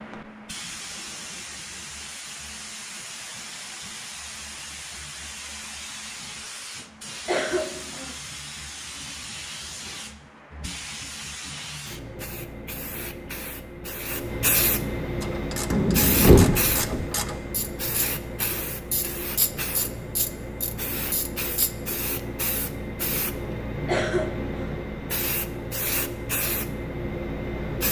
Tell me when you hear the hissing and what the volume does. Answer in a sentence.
You can hear the hissing from 0.0 to 27.8 s, getting louder.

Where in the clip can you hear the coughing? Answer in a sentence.
The coughing can be heard from 7.2 to 8.2 s and from 23.9 to 24.8 s.